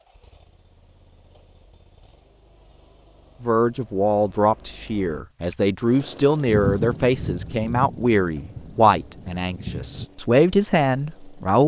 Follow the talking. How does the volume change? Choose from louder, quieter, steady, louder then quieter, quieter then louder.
steady.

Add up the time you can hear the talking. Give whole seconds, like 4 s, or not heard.
8 s.